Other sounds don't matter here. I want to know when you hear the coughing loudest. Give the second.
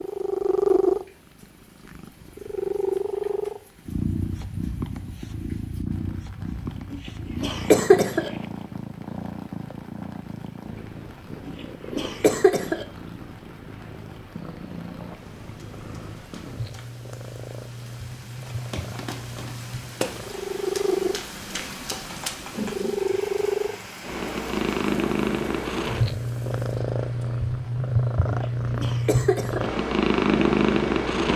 8 s.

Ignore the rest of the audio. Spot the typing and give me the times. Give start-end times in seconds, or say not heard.
not heard.